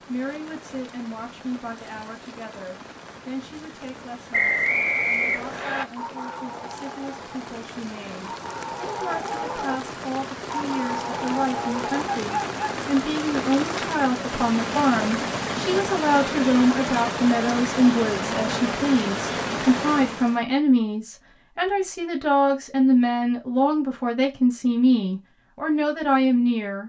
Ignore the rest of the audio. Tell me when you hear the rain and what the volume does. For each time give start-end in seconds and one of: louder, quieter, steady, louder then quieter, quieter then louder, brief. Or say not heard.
0.0-20.4 louder.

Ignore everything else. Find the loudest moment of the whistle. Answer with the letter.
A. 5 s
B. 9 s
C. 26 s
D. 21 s
A.